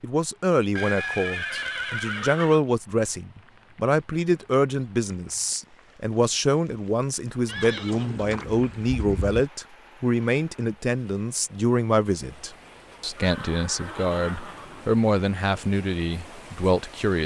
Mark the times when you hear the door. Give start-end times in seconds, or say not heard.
not heard.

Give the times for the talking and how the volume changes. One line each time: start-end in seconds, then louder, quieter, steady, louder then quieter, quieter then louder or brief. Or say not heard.
0.0-17.2 steady.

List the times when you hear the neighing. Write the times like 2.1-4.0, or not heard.
0.8-2.6, 7.5-9.5, 13.2-15.1.